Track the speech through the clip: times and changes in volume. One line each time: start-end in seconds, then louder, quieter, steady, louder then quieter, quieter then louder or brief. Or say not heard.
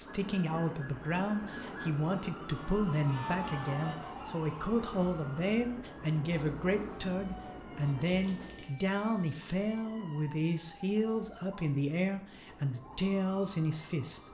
0.0-14.2 steady.